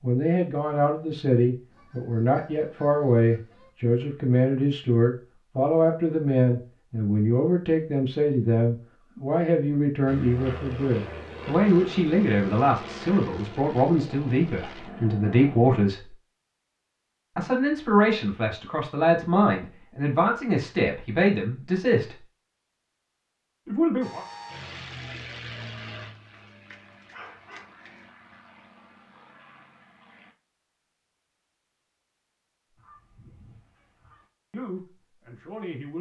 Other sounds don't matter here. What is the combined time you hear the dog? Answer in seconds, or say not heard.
2 s.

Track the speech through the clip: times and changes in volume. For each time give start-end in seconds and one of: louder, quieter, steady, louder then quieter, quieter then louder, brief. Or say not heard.
0.0-16.1 steady
17.4-22.1 steady
23.6-24.2 brief
34.5-35.9 brief.